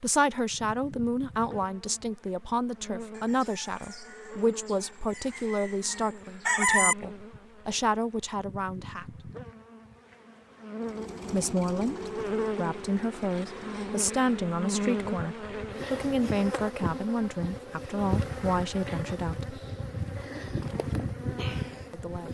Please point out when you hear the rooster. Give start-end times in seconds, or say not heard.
3.1-7.0.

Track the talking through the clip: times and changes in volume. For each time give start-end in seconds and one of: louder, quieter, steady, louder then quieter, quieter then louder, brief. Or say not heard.
0.0-9.2 steady
11.3-19.6 steady
21.9-22.3 brief.